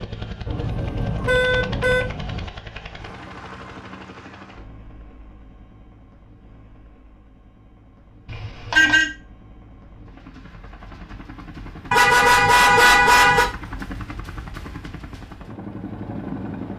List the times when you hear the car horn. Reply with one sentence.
The car horn can be heard from 0.5 to 2.5 s, from 8.2 to 9.1 s and from 11.9 to 13.4 s.